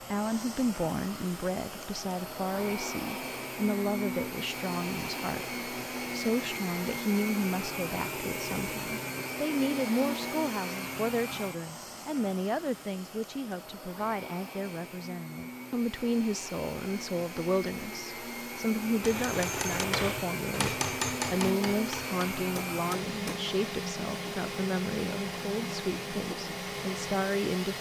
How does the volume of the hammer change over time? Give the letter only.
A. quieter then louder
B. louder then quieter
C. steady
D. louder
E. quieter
E.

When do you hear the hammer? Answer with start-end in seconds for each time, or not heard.
19.0-23.4.